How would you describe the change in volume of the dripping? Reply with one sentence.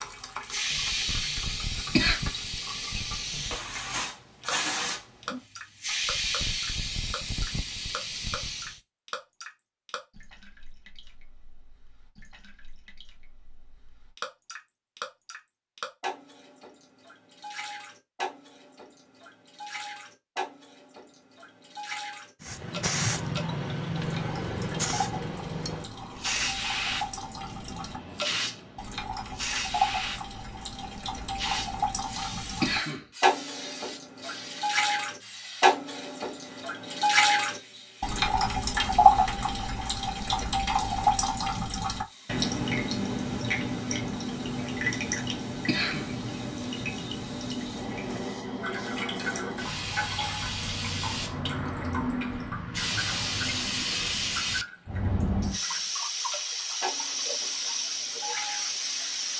The volume of the dripping goes up, then down.